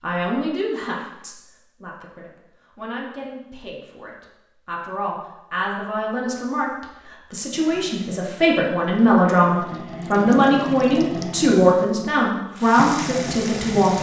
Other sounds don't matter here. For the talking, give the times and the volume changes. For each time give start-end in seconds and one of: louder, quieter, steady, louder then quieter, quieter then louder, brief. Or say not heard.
0.0-13.9 louder.